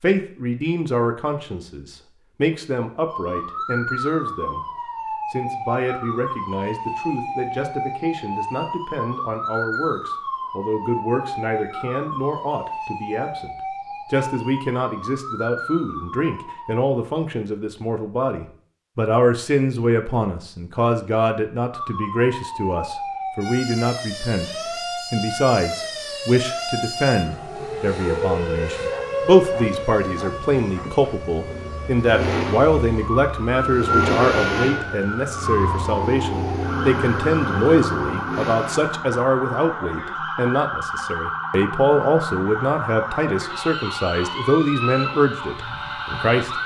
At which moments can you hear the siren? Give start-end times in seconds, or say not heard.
3.0-16.9, 21.7-46.6.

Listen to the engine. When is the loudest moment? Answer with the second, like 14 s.
34 s.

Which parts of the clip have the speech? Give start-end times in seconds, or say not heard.
0.0-4.6, 5.3-46.5.